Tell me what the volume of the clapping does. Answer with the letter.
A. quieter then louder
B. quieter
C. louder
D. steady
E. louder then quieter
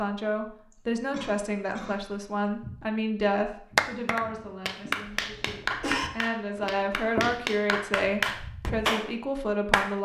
A.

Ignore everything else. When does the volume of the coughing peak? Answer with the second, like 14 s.
6 s.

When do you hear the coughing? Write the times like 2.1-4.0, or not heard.
0.7-2.5, 5.1-6.1.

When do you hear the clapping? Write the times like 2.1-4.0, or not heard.
3.8-9.9.